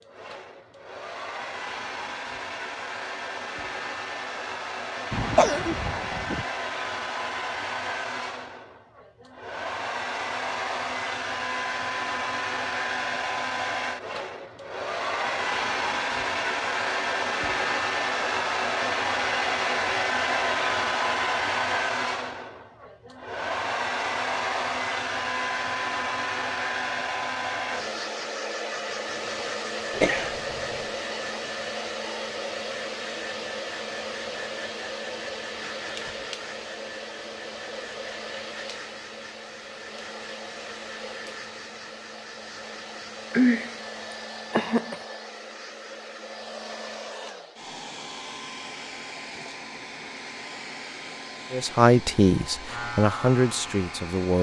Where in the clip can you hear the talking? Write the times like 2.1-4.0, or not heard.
51.5-54.3.